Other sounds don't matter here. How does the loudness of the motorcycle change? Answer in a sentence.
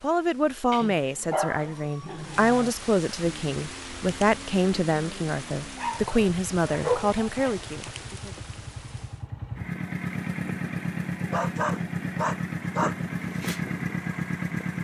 The volume of the motorcycle goes up.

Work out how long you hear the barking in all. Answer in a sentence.
The barking can be heard for 5 seconds in total.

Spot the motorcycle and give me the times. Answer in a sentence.
You can hear the motorcycle from 3.2 to 14.7 s.